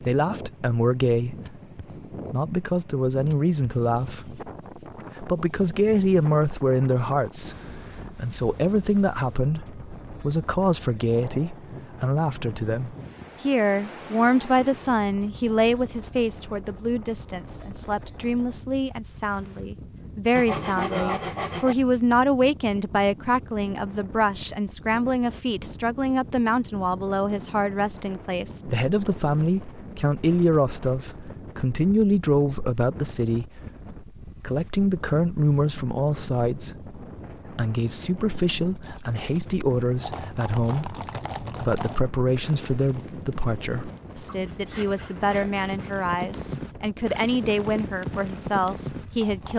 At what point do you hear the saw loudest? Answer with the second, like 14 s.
21 s.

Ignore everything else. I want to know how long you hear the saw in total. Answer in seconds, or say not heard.
3 s.